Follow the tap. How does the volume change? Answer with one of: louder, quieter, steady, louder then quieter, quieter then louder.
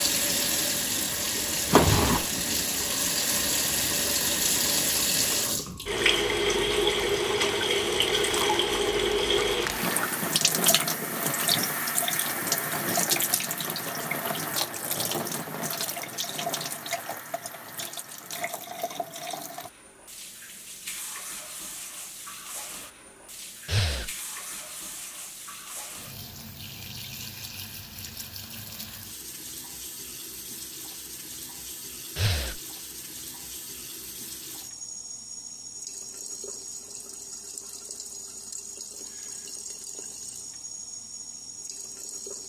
quieter.